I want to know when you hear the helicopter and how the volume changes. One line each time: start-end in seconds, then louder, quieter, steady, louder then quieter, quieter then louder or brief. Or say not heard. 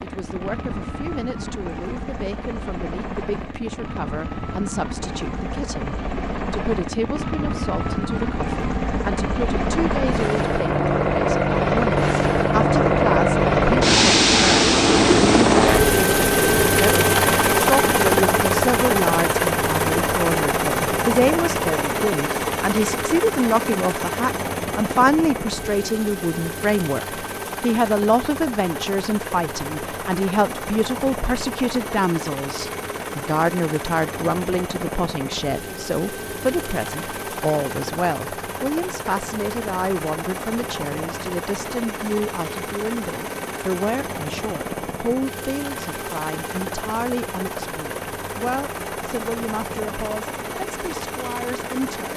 0.0-52.1 louder then quieter.